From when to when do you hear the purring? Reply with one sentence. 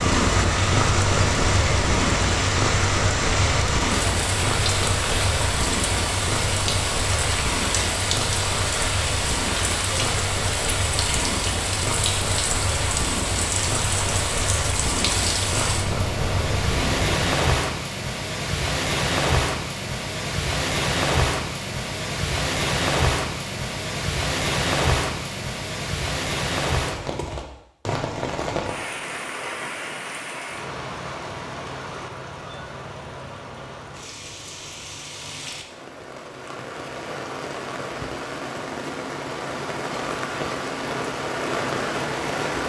You can hear the purring from 0.0 to 17.2 s.